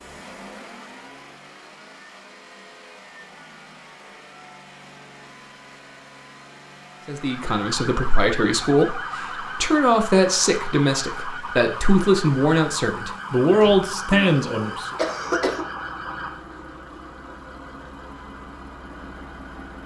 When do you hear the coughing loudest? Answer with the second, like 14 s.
15 s.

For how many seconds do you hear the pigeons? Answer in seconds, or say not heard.
not heard.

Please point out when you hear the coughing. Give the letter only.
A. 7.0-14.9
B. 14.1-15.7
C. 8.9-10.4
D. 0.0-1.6
B.